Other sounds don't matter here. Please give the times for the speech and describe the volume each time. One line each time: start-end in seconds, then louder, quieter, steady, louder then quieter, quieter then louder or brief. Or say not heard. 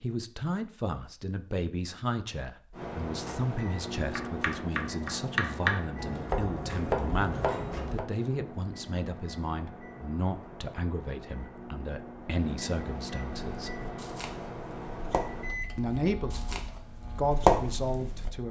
0.0-13.8 steady
15.8-18.4 brief.